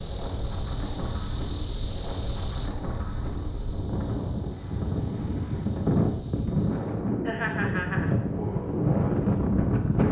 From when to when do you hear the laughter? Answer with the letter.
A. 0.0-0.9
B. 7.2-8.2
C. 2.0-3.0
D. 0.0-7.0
B.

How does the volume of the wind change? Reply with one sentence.
The volume of the wind goes up.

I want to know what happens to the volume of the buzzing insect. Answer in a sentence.
The loudness of the buzzing insect goes down.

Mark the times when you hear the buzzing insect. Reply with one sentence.
You can hear the buzzing insect from 0.0 to 7.0 s.